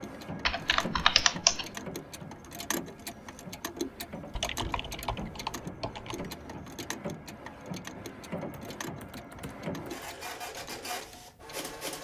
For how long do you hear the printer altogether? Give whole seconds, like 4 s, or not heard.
12 s.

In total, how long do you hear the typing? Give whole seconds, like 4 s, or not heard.
5 s.